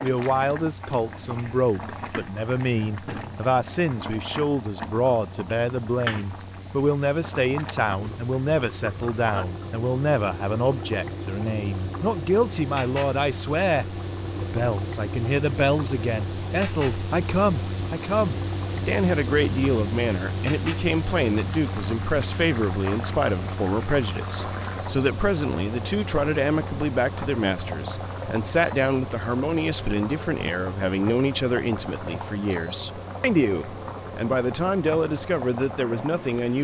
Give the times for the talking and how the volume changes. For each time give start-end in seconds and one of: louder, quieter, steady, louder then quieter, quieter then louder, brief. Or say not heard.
0.0-36.5 steady.